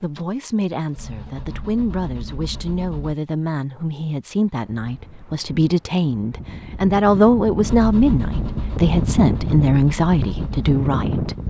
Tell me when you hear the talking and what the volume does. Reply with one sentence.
The talking can be heard from 0.0 to 11.3 s, getting louder.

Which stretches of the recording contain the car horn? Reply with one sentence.
The car horn can't be heard in this clip.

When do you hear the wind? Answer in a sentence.
The wind can be heard from 4.6 to 11.4 s.